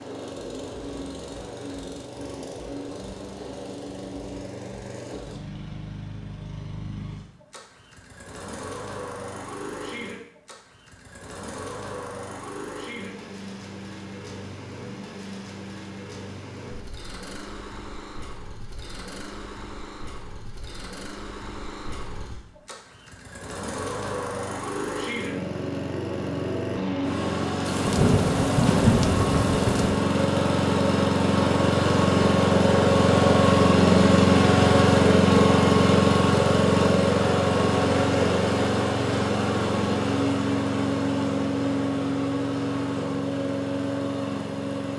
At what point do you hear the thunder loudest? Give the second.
29 s.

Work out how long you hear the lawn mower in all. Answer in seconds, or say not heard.
45 s.